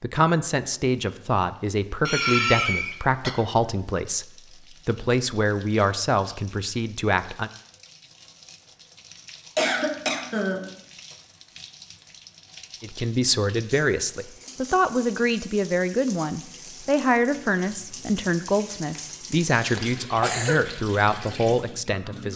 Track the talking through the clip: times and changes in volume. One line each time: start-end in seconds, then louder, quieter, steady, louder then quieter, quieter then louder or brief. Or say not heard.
0.0-7.5 steady
12.8-22.3 steady.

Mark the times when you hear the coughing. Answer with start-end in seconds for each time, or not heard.
2.0-3.3, 9.6-10.7, 18.9-20.6.